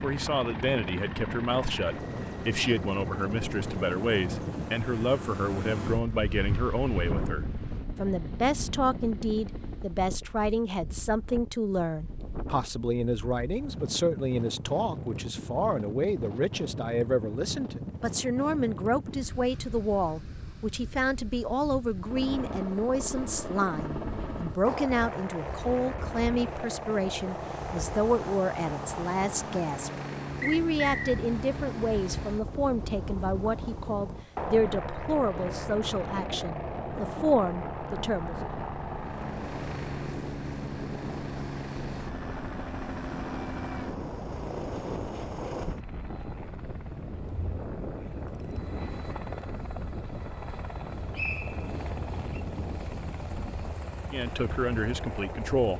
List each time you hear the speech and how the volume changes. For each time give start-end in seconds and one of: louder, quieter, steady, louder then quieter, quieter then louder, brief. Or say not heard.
0.0-38.4 steady
54.1-55.7 brief.